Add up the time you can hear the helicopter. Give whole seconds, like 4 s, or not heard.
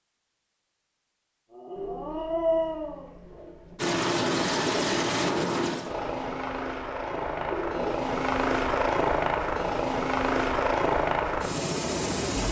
9 s.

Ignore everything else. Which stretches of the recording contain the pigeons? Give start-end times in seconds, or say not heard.
1.8-3.8, 7.4-8.1.